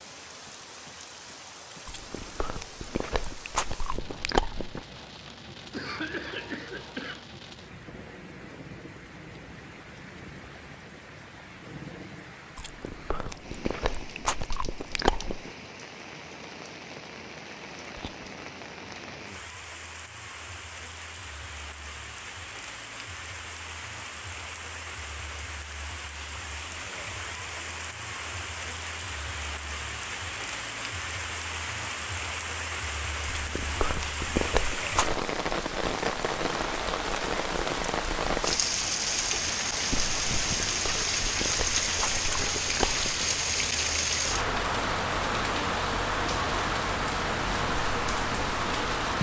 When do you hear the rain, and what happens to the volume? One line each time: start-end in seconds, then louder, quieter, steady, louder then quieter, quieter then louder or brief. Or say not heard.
0.0-49.1 louder.